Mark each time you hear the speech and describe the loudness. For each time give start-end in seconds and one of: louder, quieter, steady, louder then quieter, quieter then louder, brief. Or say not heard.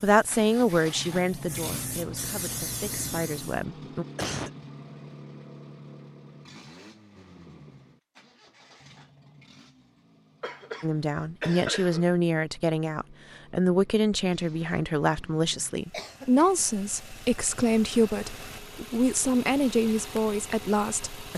0.0-4.0 quieter then louder
10.8-21.3 steady.